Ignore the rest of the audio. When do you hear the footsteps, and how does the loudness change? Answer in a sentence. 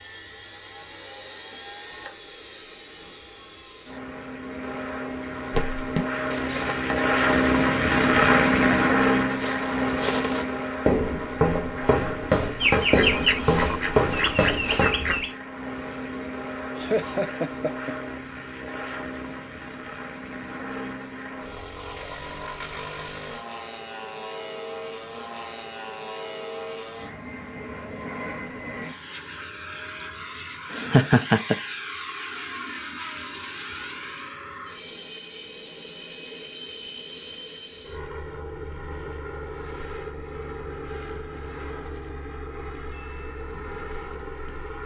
The footsteps can be heard from 5.5 to 14.9 s, getting quieter then louder.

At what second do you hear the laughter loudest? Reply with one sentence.
The volume of the laughter peaks at 31 seconds.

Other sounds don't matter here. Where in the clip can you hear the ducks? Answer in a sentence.
You can hear the ducks from 12.6 to 15.3 s.